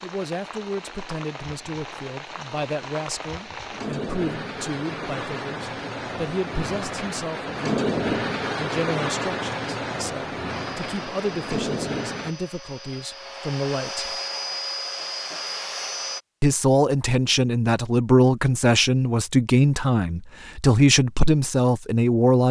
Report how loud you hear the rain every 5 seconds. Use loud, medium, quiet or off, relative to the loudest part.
medium, loud, loud, off, off.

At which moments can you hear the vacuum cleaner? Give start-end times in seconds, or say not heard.
10.4-16.2.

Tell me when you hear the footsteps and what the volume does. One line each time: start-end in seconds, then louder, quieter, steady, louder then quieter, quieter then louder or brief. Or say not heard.
not heard.